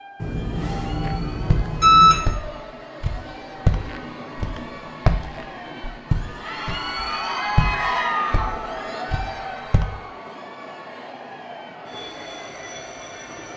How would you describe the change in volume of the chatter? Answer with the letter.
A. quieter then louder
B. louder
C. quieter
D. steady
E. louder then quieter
E.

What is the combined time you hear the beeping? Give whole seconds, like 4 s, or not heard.
2 s.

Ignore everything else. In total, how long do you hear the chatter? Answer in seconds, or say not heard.
13 s.